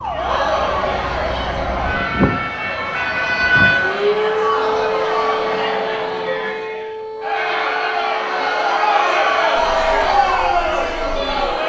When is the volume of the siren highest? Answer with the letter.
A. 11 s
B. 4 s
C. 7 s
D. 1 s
B.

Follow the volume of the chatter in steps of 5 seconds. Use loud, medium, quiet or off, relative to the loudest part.
medium, loud, loud.